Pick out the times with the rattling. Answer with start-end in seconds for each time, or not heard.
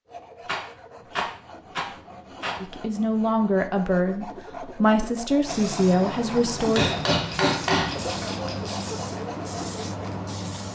0.5-2.6, 7.1-8.9.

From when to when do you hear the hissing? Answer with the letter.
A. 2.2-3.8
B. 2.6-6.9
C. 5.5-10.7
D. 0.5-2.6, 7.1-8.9
C.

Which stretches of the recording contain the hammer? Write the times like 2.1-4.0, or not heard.
6.8-8.3.